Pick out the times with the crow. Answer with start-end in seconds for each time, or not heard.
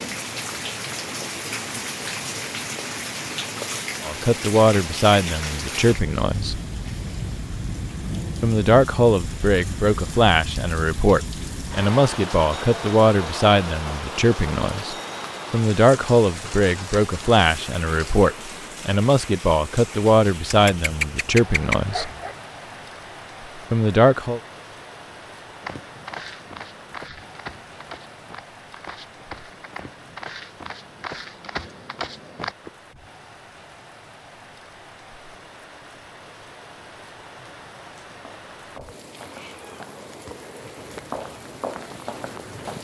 not heard.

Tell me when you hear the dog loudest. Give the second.
22 s.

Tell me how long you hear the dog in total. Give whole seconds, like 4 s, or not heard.
2 s.